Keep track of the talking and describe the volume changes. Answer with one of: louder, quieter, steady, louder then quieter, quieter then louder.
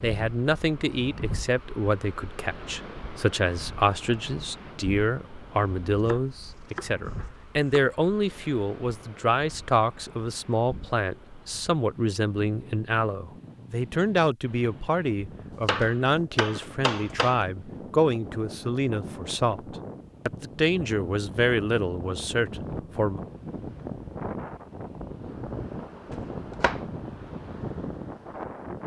steady.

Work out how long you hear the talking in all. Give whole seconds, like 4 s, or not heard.
23 s.